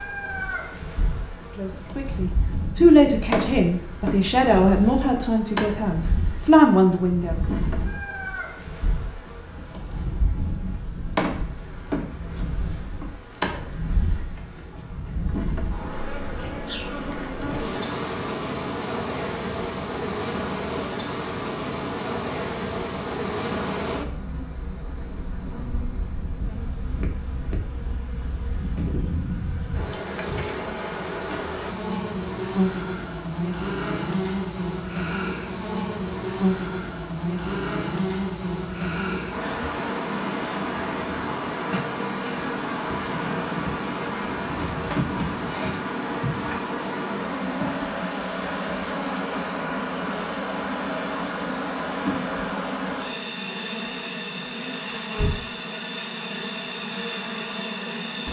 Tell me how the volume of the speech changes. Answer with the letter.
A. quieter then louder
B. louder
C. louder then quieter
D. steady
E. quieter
A.